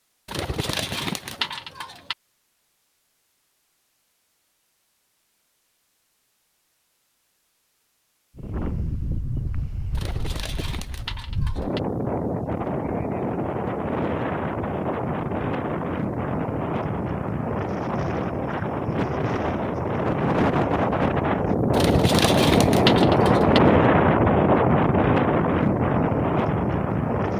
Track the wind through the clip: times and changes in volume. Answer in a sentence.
You can hear the wind from 8.3 to 27.3 s, getting louder.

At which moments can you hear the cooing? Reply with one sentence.
The cooing can be heard from 0.2 to 2.1 s, from 9.9 to 11.8 s and from 21.7 to 23.6 s.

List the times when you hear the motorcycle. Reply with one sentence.
You can't hear the motorcycle here.